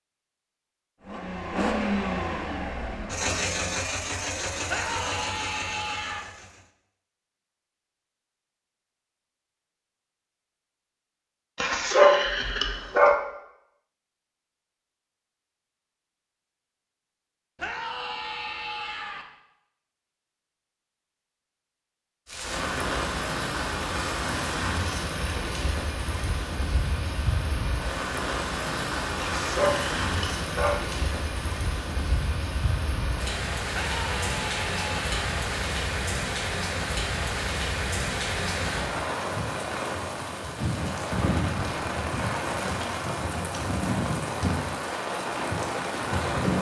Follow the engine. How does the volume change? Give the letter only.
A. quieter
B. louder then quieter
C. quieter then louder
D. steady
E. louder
A.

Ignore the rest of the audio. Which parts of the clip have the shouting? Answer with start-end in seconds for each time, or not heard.
4.7-6.2, 17.6-19.2, 33.7-35.1.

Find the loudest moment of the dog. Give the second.
12 s.